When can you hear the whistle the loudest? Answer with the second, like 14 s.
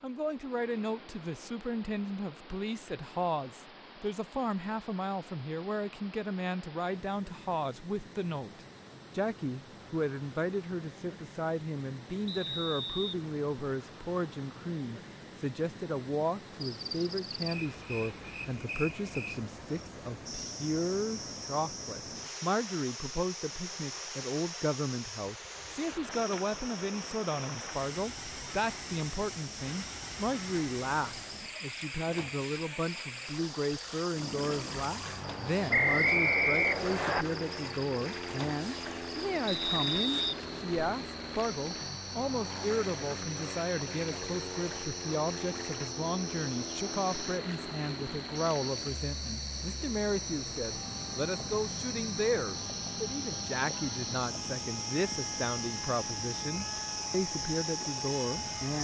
36 s.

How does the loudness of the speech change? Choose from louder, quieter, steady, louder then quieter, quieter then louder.
steady.